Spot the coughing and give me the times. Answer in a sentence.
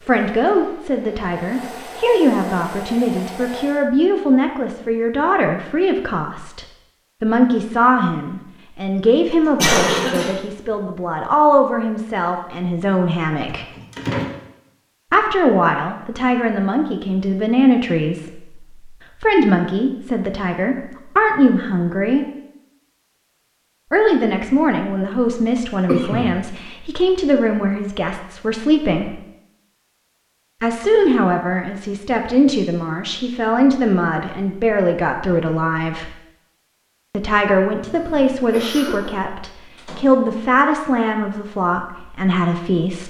The coughing can be heard from 9.6 to 10.3 s, from 25.9 to 26.3 s and from 37.8 to 39.1 s.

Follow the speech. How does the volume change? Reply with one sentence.
The volume of the speech stays about the same.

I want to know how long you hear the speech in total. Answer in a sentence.
The speech can be heard for 37 seconds in total.